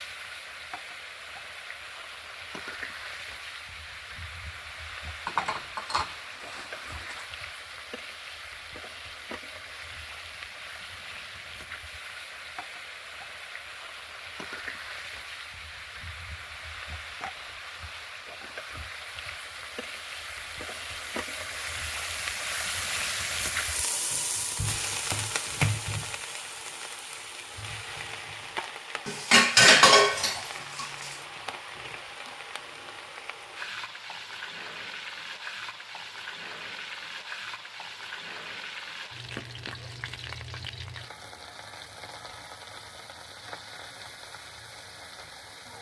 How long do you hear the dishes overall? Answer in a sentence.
The dishes can be heard for 4 seconds in total.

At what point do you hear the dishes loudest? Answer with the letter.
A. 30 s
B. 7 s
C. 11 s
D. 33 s
A.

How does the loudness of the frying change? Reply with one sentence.
The volume of the frying goes up, then down.